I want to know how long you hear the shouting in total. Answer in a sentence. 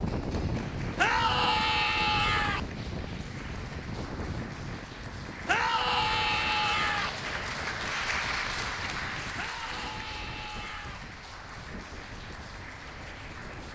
The shouting can be heard for 5 seconds in total.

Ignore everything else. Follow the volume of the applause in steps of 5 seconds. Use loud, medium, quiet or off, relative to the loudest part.
medium, loud, medium.